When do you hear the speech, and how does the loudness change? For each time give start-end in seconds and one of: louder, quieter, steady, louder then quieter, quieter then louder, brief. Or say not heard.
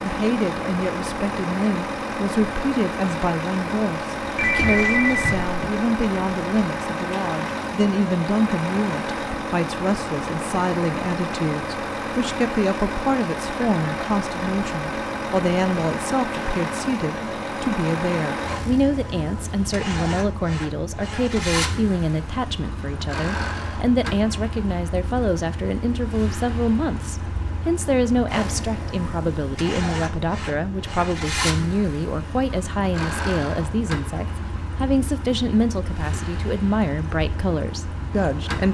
0.0-38.7 steady.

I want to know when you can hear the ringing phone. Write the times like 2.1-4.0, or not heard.
4.3-5.5.